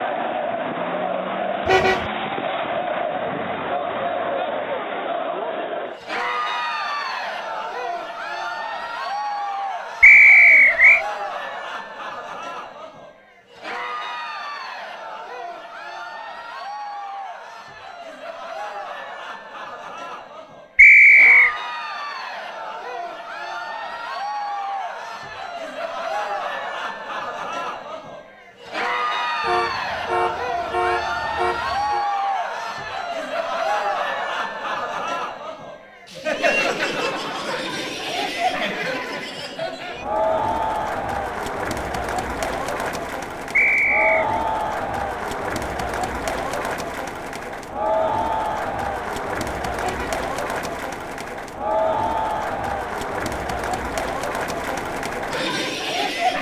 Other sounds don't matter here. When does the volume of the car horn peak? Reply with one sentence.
The loudest moment of the car horn is at 2 seconds.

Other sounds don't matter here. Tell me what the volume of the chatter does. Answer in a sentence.
The volume of the chatter goes down, then up.